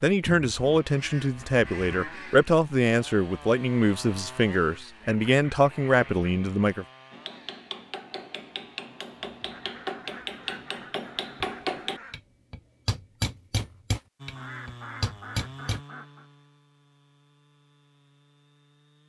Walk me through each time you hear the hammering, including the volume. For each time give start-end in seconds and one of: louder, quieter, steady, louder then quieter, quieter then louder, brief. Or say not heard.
7.1-15.8 louder.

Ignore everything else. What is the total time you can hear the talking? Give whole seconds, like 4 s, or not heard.
7 s.